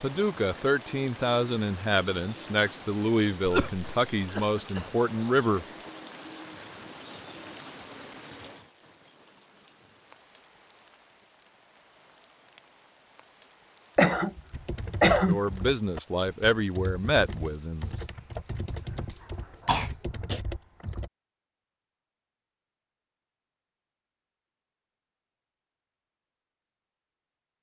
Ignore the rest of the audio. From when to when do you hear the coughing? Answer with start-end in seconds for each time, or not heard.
2.9-4.9, 13.9-15.4, 19.6-20.4.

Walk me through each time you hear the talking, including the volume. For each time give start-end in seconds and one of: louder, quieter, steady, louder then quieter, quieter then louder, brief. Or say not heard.
0.0-5.7 steady
15.2-17.9 brief.